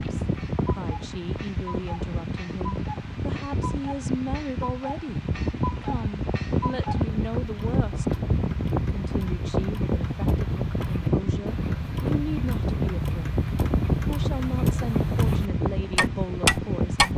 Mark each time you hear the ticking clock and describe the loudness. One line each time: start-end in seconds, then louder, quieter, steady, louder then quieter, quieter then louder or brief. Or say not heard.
0.0-17.1 louder.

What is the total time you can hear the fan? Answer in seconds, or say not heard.
17 s.